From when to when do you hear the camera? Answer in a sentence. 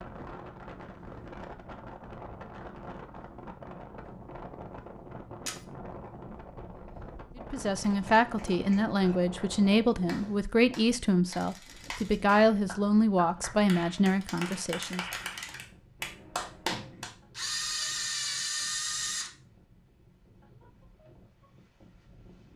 You can hear the camera from 11.3 to 12.2 s and from 17.3 to 19.3 s.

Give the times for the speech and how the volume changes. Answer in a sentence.
The speech can be heard from 7.5 to 15.1 s, at a steady volume.